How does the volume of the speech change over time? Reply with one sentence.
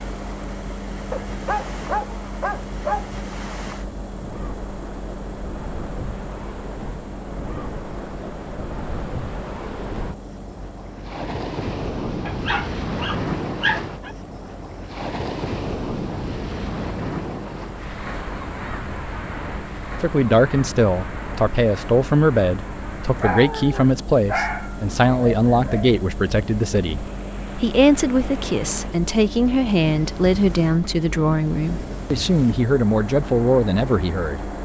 The loudness of the speech stays about the same.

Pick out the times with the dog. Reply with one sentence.
You can hear the dog from 1.1 to 3.1 s, from 12.2 to 14.2 s and from 23.2 to 26.0 s.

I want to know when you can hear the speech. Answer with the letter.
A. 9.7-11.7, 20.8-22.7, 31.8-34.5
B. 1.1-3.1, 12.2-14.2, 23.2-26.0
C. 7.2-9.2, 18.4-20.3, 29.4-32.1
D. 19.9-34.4
D.